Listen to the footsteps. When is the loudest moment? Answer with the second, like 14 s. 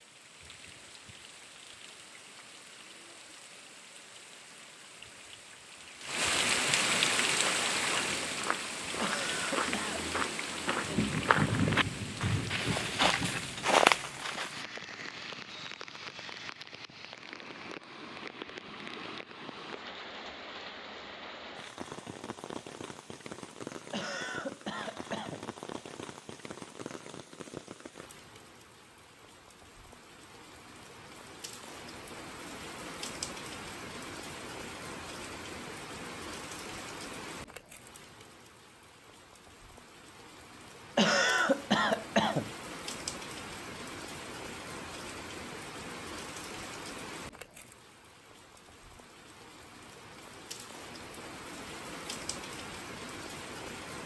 14 s.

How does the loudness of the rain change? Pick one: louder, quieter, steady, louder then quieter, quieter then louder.
quieter.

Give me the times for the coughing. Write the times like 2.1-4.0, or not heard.
9.0-10.1, 23.9-25.4, 41.0-42.5.